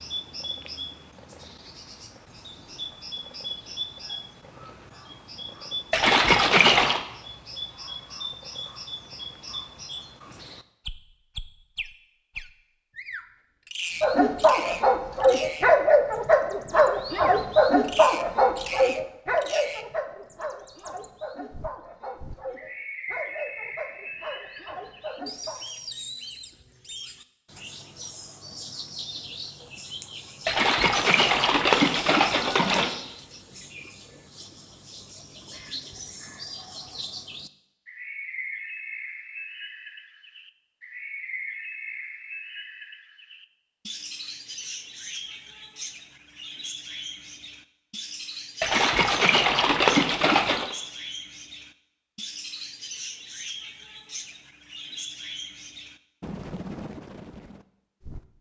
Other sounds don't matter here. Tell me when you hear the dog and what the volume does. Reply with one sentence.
You can hear the dog from 14.0 to 25.6 s, getting quieter.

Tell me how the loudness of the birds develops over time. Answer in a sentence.
The volume of the birds stays about the same.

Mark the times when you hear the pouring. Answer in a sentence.
You can hear the pouring from 5.9 to 7.0 s, from 30.4 to 33.0 s and from 48.6 to 50.8 s.